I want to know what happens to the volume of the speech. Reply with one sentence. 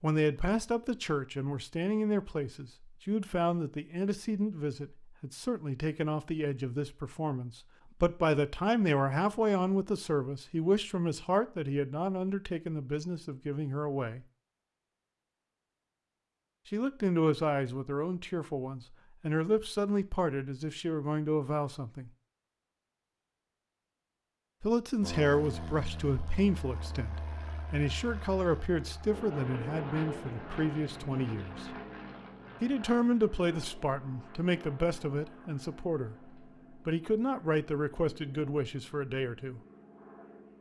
The volume of the speech stays about the same.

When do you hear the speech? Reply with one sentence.
You can hear the speech from 0.0 to 14.2 s, from 16.7 to 22.1 s, from 24.6 to 31.8 s and from 32.6 to 39.6 s.